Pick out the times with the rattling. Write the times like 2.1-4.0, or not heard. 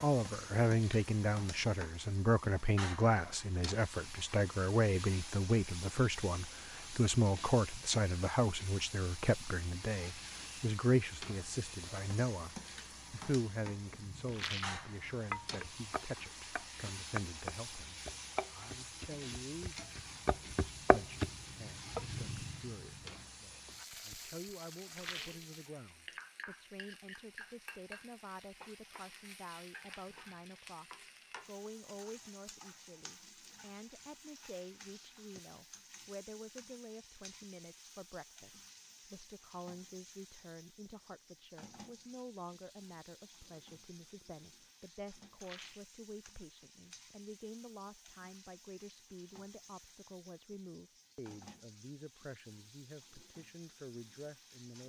14.3-14.8, 24.9-25.4, 45.4-45.9.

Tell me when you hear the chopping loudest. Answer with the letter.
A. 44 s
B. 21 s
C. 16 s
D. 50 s
B.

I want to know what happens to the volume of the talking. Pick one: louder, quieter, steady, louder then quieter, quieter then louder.
quieter.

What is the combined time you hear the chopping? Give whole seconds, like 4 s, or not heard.
9 s.